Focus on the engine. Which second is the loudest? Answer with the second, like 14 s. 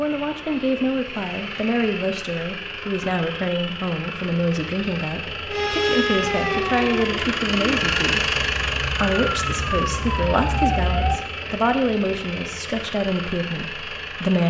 8 s.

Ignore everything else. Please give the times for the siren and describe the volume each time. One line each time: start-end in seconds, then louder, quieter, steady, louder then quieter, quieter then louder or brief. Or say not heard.
5.5-11.2 quieter then louder.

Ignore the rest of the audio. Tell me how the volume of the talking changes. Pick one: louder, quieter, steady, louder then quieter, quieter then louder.
steady.